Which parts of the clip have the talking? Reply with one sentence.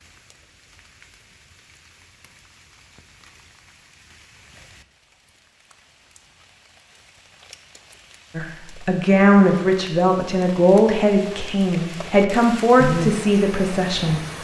You can hear the talking from 8.3 to 14.3 s.